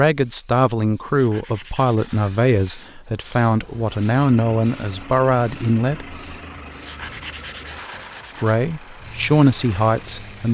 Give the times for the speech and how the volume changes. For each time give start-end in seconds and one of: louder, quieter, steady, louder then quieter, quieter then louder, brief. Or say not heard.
0.0-6.2 steady
8.4-10.4 brief.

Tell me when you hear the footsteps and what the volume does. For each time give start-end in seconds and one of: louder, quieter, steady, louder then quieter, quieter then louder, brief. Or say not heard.
not heard.